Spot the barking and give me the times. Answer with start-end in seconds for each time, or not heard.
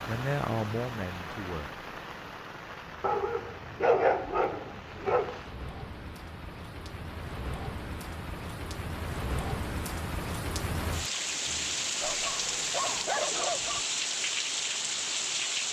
3.0-5.4, 12.0-13.8.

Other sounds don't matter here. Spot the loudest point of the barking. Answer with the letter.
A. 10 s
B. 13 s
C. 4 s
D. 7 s
C.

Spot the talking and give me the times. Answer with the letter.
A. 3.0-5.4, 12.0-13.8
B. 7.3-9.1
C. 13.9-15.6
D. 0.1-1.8
D.